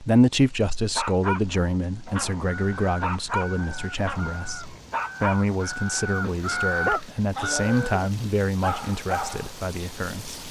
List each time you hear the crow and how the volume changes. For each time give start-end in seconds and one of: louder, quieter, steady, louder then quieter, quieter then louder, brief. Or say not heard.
2.5-8.0 louder.